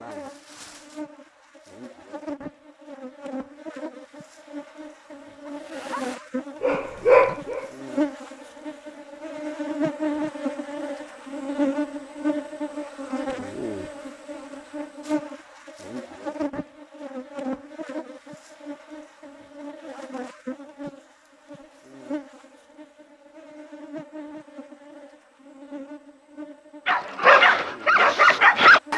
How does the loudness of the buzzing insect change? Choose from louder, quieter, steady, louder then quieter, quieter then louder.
louder then quieter.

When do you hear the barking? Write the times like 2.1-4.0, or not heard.
5.5-7.8, 26.9-28.9.